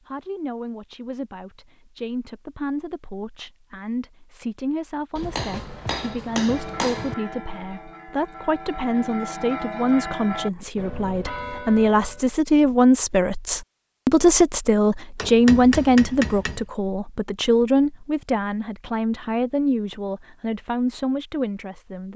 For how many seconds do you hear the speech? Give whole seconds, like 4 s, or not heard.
22 s.